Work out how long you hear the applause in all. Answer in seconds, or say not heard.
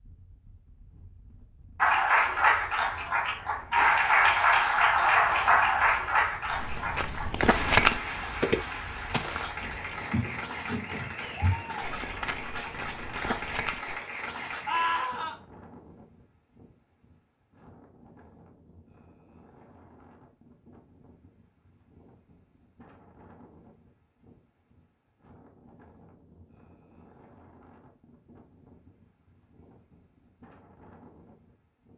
13 s.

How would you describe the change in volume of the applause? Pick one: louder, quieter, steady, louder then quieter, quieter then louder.
quieter.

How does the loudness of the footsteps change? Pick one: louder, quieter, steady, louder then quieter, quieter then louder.
quieter.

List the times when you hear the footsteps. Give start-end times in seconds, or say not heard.
6.5-13.9.